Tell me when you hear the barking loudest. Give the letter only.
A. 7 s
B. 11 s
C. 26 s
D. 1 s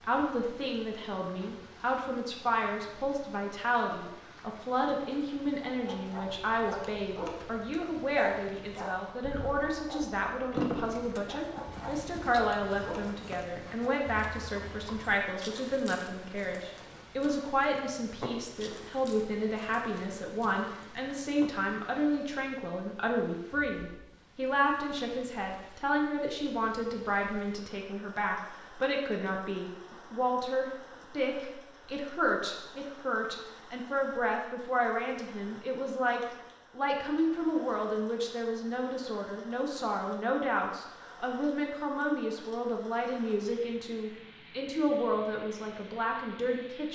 B.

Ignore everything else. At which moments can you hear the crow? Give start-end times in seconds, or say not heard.
not heard.